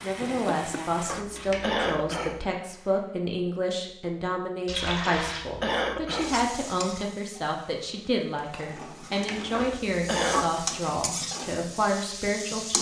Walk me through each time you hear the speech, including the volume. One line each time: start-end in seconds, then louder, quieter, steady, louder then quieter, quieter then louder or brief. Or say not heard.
0.0-12.7 steady.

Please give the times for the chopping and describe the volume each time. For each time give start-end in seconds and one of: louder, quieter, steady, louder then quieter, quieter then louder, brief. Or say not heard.
not heard.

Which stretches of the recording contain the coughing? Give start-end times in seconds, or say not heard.
1.1-2.5, 5.2-6.5, 9.5-10.6.